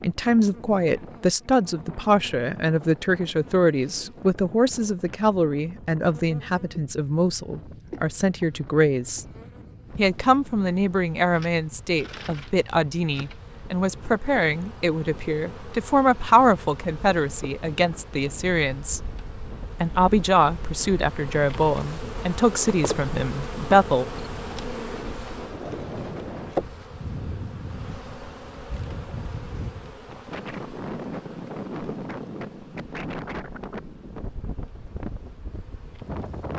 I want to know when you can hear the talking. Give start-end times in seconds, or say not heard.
0.0-9.2, 9.9-19.0, 19.8-24.1.